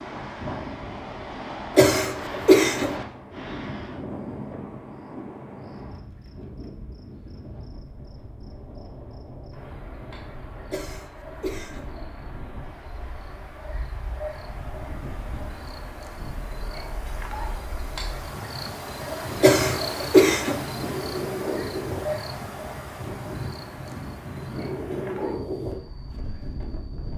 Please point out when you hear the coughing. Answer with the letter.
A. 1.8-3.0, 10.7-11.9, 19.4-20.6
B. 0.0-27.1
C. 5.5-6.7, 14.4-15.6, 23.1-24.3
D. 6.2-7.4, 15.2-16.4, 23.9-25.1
A.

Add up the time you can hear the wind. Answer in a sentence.
You can hear the wind for 27 seconds altogether.